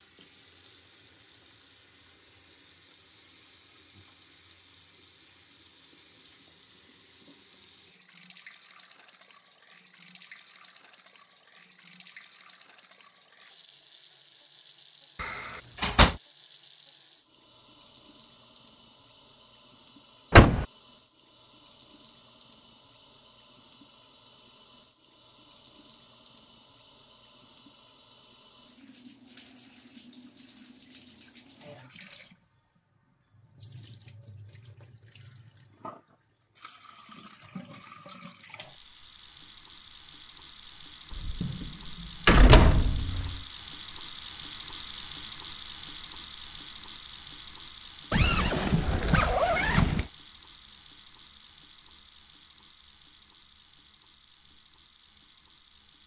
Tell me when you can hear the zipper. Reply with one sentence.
The zipper can be heard from 48.1 to 50.1 s.